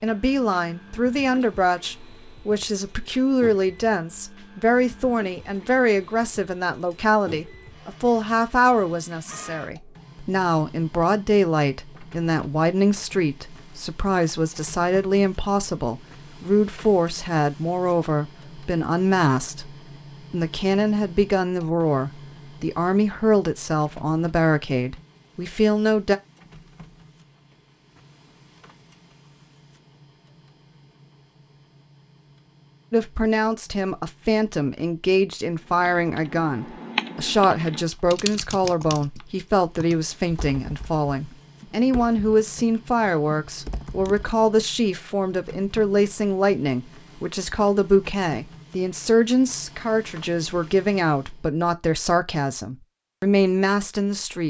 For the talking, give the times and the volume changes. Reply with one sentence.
You can hear the talking from 0.0 to 26.1 s, at a steady volume; and from 32.9 to 54.4 s, at a steady volume.